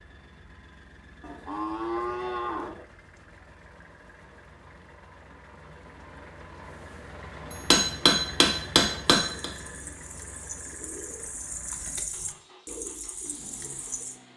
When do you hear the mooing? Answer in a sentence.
The mooing can be heard from 1.2 to 2.9 s.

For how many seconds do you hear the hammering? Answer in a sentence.
The hammering can be heard for 2 seconds in total.